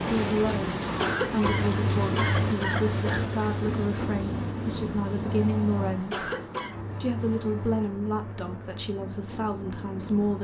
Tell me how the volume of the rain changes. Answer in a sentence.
The volume of the rain goes down.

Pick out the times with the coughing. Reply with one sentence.
You can hear the coughing from 0.9 to 3.2 s and from 6.1 to 6.8 s.